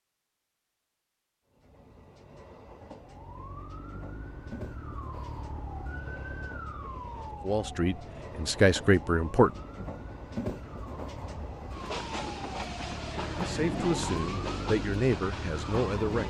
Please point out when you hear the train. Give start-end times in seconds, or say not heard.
1.5-16.2.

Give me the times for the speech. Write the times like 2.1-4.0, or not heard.
7.5-9.6, 13.3-16.2.